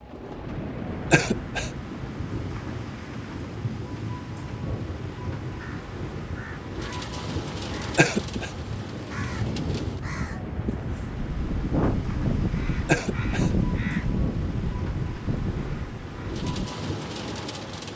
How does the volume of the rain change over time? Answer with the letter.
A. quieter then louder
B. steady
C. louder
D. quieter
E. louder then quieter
B.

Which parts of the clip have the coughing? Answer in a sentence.
You can hear the coughing from 1.1 to 1.7 s, from 8.0 to 8.5 s and from 12.8 to 13.5 s.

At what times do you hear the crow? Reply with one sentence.
You can hear the crow from 5.5 to 16.7 s.